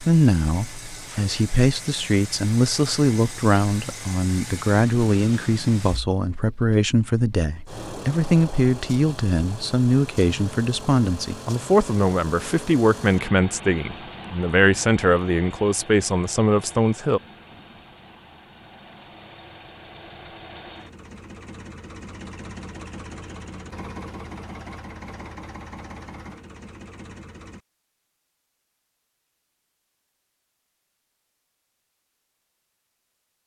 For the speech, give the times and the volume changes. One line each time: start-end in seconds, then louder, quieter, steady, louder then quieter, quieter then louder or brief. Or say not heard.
0.0-17.2 steady.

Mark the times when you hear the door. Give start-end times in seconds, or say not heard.
not heard.